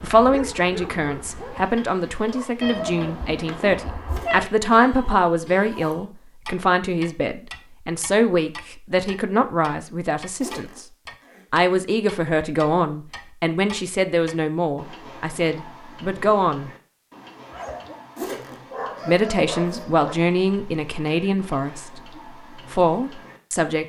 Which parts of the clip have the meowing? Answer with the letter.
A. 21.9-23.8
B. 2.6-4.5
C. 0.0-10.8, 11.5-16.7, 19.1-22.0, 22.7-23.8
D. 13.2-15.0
B.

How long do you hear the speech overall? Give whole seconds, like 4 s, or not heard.
20 s.